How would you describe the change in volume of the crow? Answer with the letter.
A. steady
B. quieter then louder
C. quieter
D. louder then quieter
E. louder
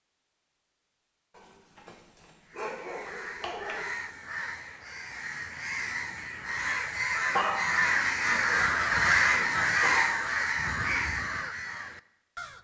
D.